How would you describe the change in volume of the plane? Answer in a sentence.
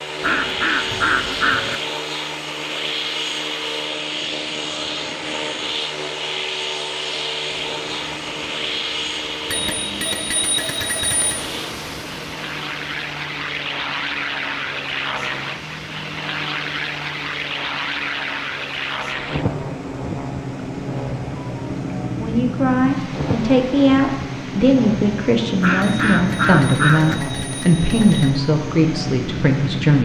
The loudness of the plane stays about the same.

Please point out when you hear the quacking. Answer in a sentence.
You can hear the quacking from 0.2 to 1.8 s and from 25.6 to 27.1 s.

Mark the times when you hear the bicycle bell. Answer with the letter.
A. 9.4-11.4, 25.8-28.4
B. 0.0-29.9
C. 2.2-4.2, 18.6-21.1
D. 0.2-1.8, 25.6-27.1
A.